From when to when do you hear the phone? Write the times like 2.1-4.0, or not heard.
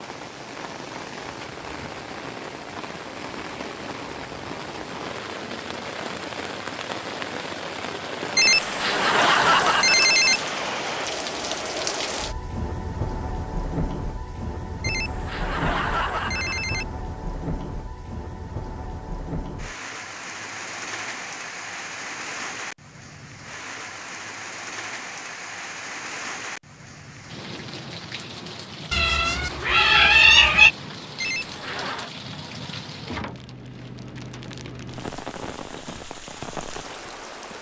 8.3-10.4, 14.8-16.9, 31.2-32.1.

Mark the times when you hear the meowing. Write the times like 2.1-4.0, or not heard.
28.9-30.7.